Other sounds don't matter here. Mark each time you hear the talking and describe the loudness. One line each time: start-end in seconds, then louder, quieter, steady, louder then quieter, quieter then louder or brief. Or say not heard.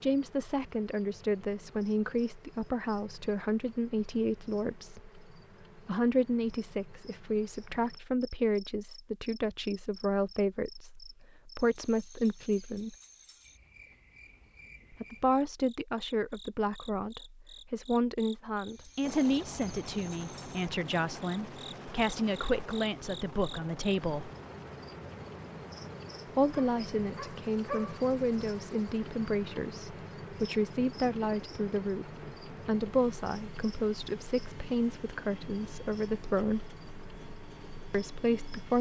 0.0-12.9 steady
14.9-24.3 steady
26.2-36.6 steady
37.9-38.7 brief.